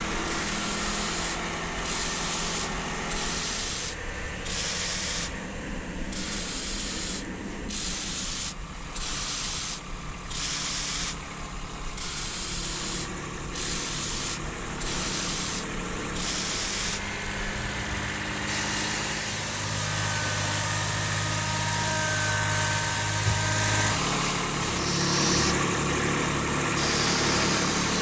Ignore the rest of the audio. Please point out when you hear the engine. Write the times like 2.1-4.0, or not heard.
0.0-27.9.